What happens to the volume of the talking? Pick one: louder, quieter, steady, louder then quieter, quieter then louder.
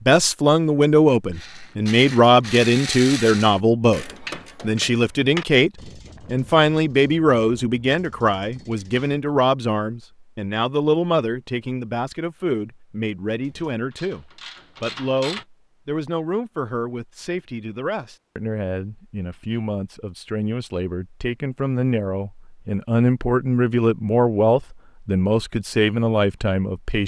quieter then louder.